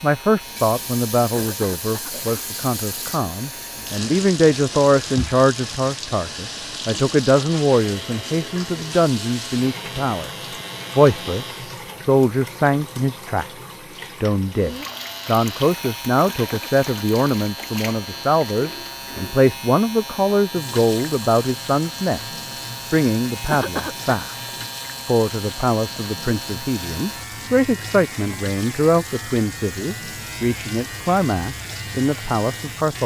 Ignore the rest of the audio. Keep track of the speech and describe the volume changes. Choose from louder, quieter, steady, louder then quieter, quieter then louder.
steady.